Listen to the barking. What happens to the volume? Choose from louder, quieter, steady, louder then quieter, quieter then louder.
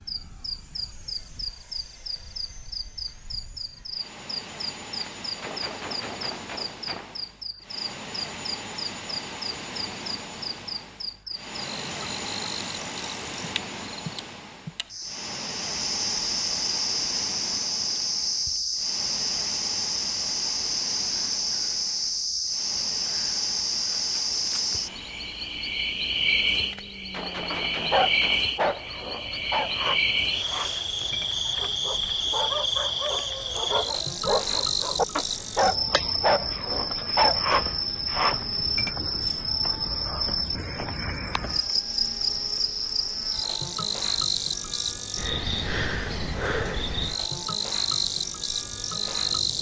quieter then louder.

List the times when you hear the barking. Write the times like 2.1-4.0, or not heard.
27.5-39.0.